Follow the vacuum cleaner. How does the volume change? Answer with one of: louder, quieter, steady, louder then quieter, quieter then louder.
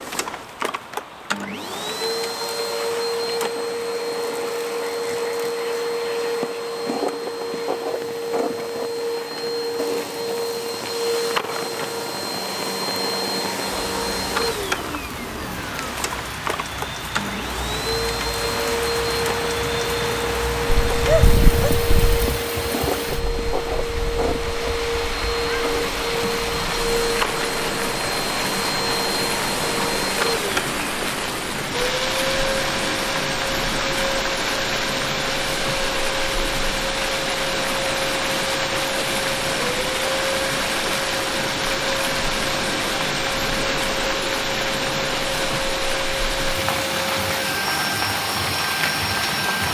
steady.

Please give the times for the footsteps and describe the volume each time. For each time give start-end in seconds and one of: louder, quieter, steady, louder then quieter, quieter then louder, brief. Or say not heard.
not heard.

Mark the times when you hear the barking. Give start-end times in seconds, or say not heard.
20.9-22.4.